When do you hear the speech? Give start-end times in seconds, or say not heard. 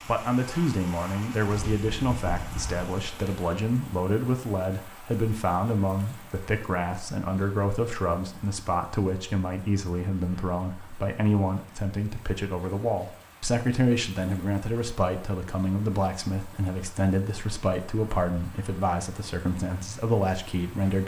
0.1-21.0.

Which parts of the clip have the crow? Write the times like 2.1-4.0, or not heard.
not heard.